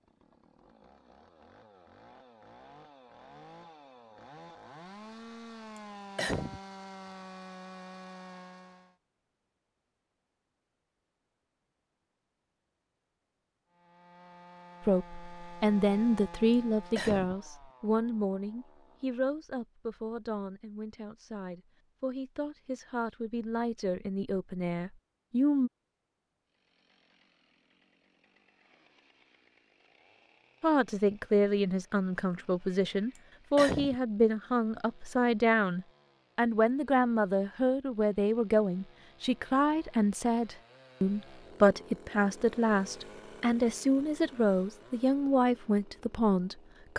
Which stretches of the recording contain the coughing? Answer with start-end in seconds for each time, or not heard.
5.8-6.6, 16.5-17.4, 33.1-34.0.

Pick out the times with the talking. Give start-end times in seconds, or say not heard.
14.8-25.7, 30.6-46.9.